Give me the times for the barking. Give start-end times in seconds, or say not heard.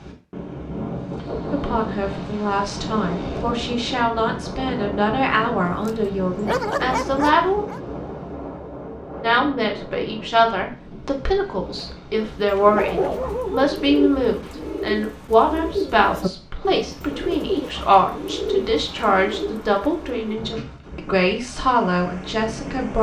5.8-7.8, 12.7-13.7.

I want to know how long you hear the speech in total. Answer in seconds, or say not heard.
20 s.